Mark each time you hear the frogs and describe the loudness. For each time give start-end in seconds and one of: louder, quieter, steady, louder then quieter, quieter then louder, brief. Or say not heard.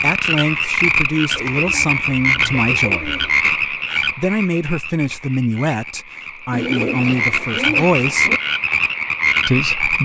0.0-9.9 quieter then louder.